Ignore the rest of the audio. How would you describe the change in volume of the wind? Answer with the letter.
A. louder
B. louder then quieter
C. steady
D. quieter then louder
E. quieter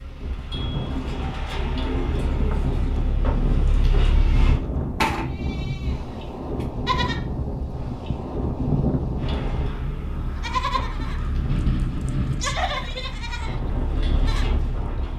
C.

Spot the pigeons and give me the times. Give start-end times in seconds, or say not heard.
0.9-2.9.